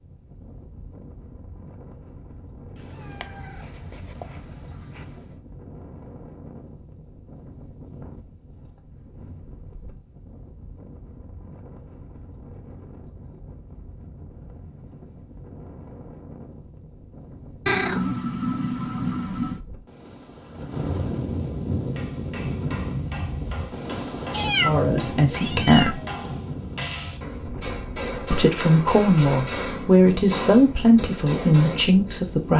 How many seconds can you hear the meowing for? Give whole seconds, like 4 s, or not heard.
6 s.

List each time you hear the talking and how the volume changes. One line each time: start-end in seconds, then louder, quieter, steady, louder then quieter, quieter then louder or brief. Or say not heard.
24.6-26.0 brief
28.3-32.5 steady.